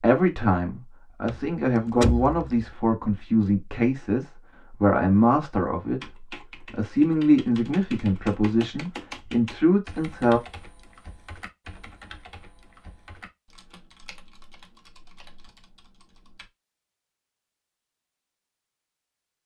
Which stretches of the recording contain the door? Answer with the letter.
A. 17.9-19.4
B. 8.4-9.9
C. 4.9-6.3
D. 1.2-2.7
D.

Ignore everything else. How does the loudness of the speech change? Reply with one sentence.
The volume of the speech stays about the same.